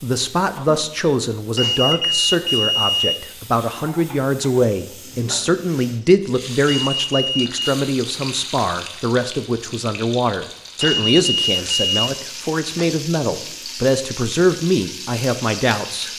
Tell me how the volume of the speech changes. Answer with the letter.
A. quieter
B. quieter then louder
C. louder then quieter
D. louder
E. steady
E.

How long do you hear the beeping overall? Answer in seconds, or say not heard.
4 s.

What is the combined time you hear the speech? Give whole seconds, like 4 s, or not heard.
16 s.